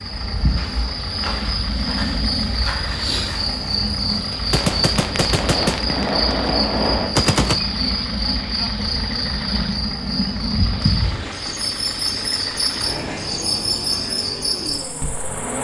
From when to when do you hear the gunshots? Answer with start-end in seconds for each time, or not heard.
4.5-7.6.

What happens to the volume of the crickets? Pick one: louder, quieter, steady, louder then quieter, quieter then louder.
steady.